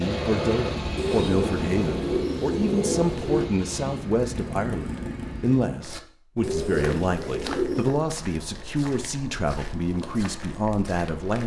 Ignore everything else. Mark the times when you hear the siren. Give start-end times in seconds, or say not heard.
not heard.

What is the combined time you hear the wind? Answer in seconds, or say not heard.
6 s.